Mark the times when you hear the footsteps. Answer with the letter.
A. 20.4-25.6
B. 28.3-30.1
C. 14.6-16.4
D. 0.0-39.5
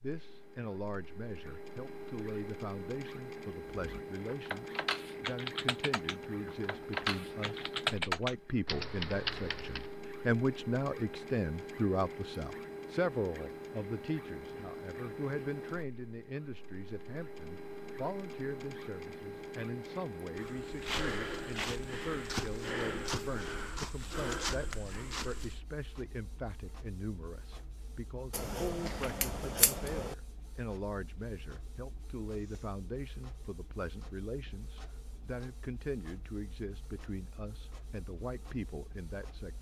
A.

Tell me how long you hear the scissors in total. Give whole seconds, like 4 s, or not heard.
2 s.